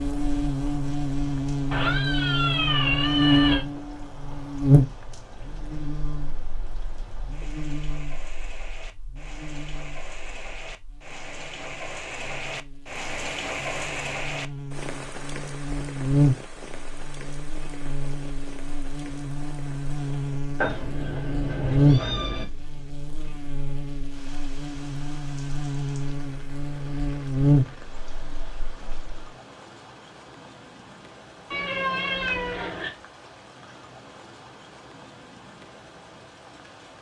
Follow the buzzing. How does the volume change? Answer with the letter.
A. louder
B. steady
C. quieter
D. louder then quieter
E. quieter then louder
E.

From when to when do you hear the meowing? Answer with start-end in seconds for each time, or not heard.
1.7-3.6, 20.6-22.4, 31.5-33.0.